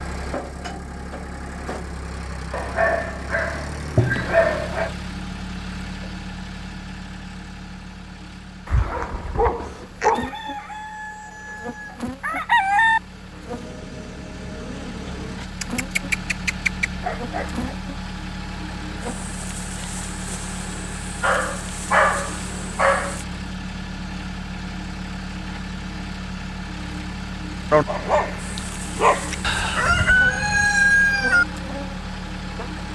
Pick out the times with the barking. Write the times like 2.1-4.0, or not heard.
2.5-4.9, 8.7-10.3, 15.6-17.6, 21.2-23.2, 27.7-29.4.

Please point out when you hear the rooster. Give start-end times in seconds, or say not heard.
10.1-13.0, 29.4-31.4.